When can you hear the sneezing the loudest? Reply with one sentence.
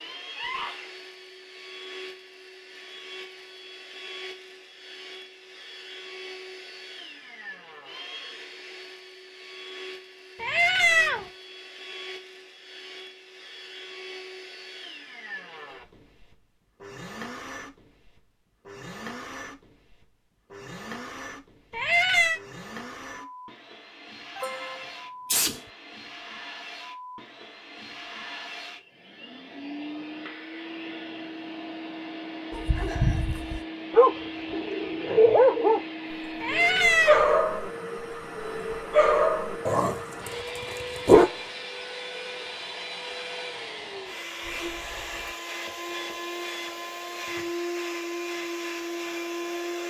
The volume of the sneezing peaks at 25 seconds.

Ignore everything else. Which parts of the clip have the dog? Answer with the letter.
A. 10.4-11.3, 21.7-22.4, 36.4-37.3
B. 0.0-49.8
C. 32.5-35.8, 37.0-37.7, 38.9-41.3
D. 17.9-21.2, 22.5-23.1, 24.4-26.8
C.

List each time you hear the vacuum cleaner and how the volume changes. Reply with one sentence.
You can hear the vacuum cleaner from 0.0 to 49.8 s, getting louder.